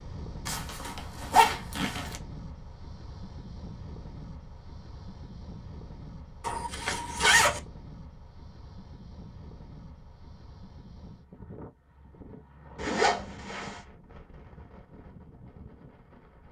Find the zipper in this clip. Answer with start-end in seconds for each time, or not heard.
0.5-2.2, 6.4-7.6, 12.8-13.8.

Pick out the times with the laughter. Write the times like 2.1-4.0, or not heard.
not heard.